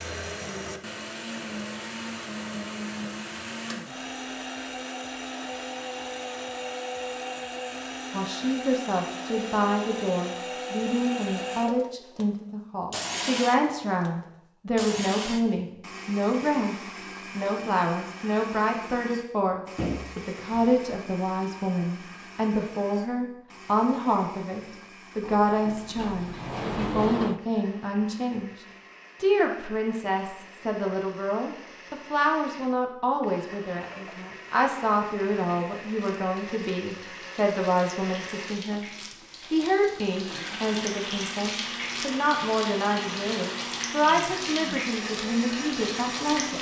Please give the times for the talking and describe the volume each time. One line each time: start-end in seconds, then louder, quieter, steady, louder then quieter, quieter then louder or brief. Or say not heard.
8.1-46.5 steady.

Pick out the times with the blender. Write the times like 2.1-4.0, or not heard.
0.0-46.5.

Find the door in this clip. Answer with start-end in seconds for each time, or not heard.
19.8-20.8, 25.2-27.4.